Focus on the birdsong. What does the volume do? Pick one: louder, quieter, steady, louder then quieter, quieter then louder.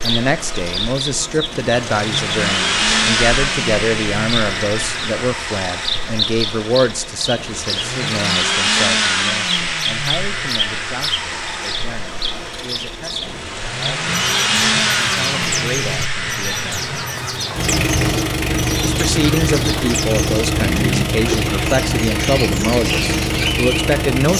steady.